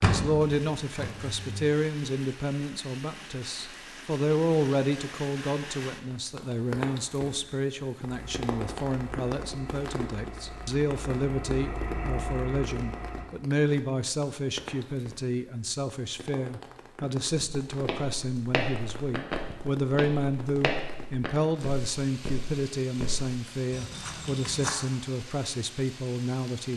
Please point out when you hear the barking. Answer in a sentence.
You can't hear the barking here.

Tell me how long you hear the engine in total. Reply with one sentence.
The engine can be heard for 7 seconds in total.